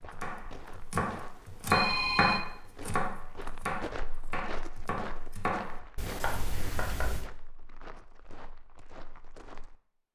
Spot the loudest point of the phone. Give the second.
2 s.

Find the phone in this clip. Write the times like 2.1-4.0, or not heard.
1.6-2.5, 6.0-7.3.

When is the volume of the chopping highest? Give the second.
2 s.